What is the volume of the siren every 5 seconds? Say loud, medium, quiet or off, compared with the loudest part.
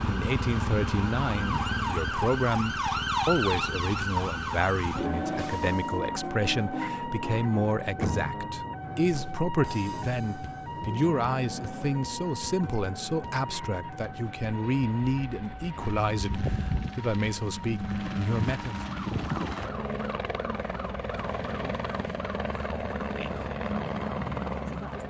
loud, loud, medium, quiet, quiet.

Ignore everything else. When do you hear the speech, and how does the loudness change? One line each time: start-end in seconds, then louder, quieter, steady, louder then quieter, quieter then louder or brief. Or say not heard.
0.1-18.8 steady.